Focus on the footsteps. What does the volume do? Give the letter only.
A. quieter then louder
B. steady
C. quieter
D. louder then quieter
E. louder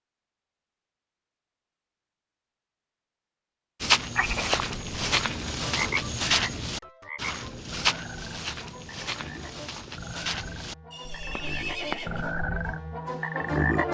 C.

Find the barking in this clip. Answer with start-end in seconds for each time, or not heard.
not heard.